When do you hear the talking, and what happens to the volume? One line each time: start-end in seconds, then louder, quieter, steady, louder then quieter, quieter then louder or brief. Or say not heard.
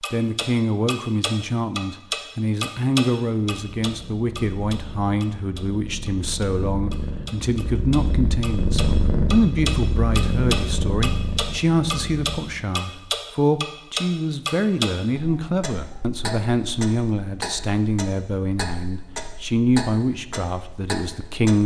0.1-21.6 steady.